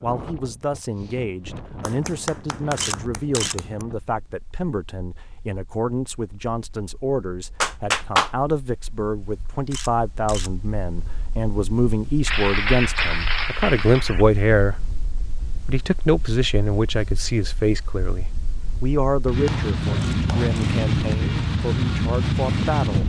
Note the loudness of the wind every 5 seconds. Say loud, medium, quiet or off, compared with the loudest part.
quiet, quiet, quiet, medium, loud.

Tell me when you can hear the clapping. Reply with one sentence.
The clapping can be heard from 1.9 to 3.9 s, from 7.6 to 8.3 s, from 12.2 to 14.2 s and from 19.4 to 21.1 s.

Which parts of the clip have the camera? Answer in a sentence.
You can hear the camera from 2.8 to 3.5 s, from 9.7 to 10.5 s and from 19.9 to 20.8 s.